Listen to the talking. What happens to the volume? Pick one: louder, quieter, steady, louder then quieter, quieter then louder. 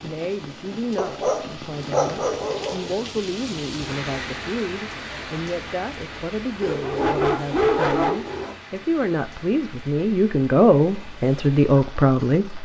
louder.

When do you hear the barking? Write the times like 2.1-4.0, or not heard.
0.9-2.9, 6.6-8.6.